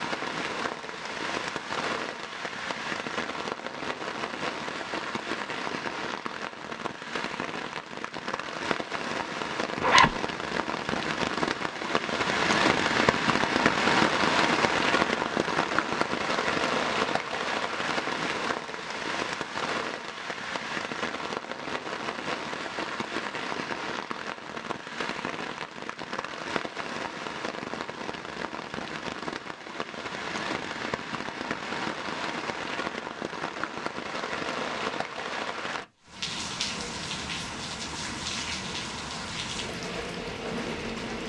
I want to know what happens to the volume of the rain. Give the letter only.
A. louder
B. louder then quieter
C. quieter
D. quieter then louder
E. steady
B.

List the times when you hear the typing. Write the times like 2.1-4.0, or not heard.
not heard.